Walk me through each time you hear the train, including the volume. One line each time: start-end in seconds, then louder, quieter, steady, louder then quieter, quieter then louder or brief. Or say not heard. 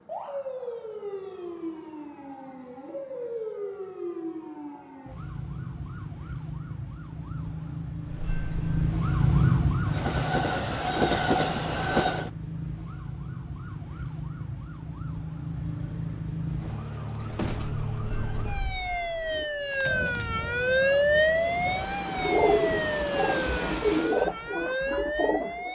8.1-12.3 quieter then louder
16.6-24.2 louder.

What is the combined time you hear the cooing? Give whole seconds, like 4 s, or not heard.
6 s.